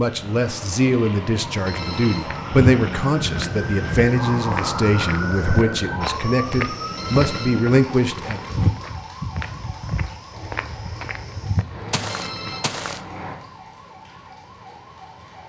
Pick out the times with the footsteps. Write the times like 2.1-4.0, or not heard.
1.6-13.0.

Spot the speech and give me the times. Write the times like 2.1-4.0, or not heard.
0.0-8.4.